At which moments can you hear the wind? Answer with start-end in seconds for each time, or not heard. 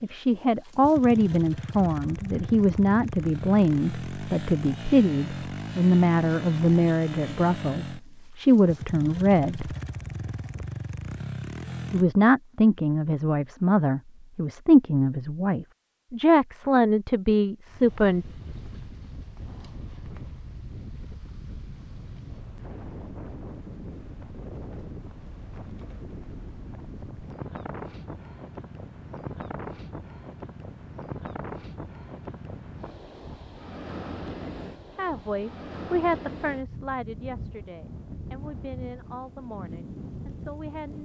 17.6-41.0.